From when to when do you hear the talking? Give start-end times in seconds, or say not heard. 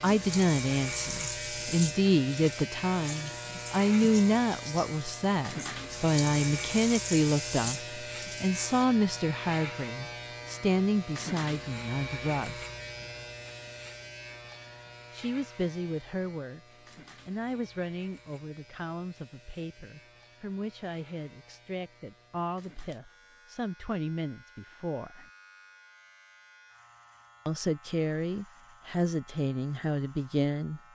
0.0-12.7, 15.1-16.6, 17.2-25.2, 27.4-30.8.